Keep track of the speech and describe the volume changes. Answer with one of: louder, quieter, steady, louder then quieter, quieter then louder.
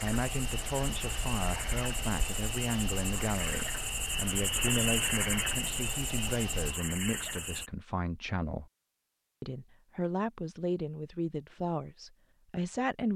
steady.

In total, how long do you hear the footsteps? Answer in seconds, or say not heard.
not heard.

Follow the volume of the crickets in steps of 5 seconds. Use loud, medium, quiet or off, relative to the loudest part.
loud, loud, off.